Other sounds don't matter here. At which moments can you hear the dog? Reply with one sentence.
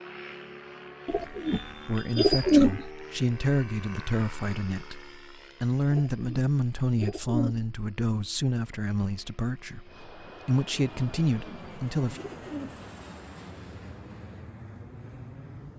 You can't hear the dog here.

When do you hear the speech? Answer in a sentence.
You can hear the speech from 1.9 to 12.2 s.